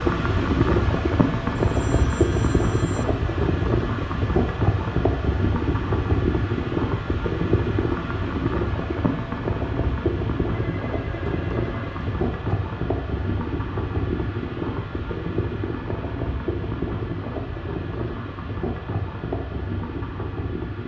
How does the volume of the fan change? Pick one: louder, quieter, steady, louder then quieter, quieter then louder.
quieter.